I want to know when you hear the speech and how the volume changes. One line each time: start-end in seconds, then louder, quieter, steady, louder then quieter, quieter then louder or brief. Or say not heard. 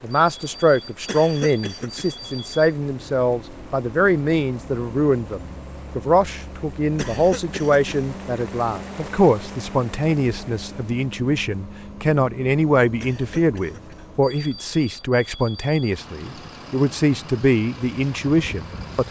0.0-19.0 steady.